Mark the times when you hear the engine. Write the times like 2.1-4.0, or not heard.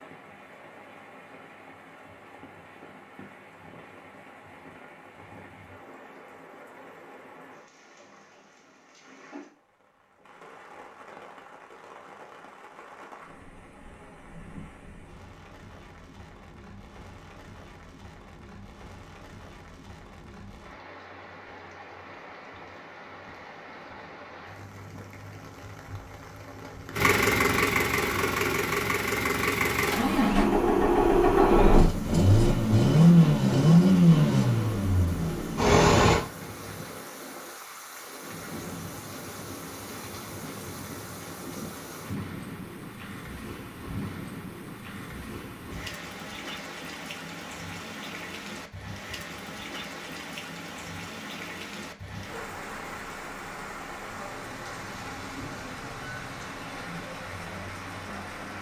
26.9-36.2.